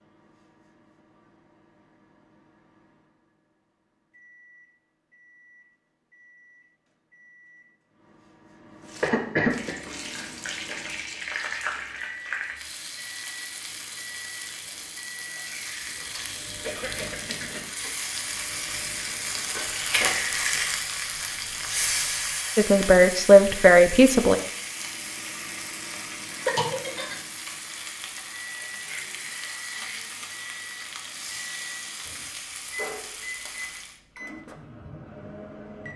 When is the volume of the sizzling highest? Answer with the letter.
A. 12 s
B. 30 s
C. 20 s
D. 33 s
C.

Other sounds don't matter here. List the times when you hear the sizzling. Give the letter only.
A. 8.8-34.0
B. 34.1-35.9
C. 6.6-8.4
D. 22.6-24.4
A.